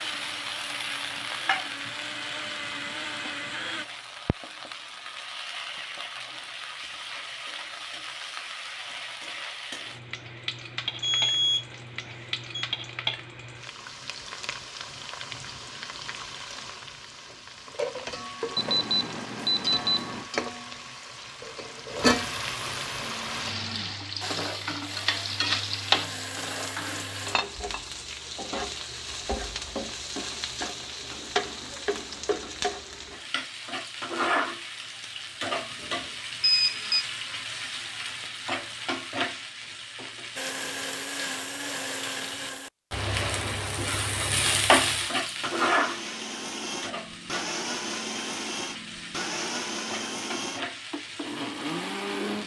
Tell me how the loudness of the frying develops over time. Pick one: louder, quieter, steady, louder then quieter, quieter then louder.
louder.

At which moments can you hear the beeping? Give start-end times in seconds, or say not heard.
11.0-12.7, 18.6-20.2, 35.9-37.0.